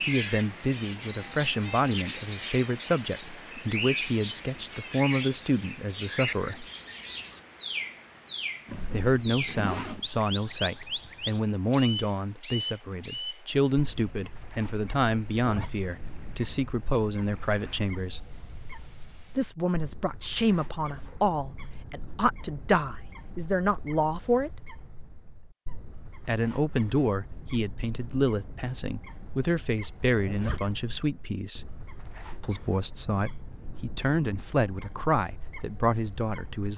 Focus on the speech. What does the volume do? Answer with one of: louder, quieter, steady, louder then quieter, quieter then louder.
steady.